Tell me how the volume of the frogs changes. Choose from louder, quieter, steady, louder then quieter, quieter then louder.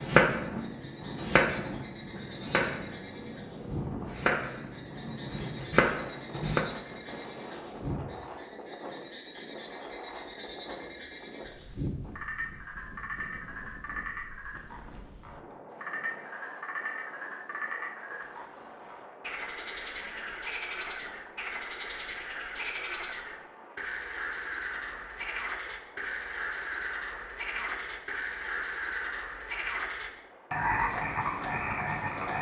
louder.